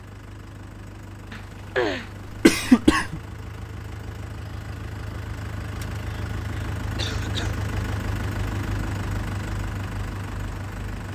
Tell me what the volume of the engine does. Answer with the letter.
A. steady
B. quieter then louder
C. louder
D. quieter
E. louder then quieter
C.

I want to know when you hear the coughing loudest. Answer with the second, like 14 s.
3 s.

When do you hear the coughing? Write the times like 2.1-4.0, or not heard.
1.3-3.2, 7.0-7.5.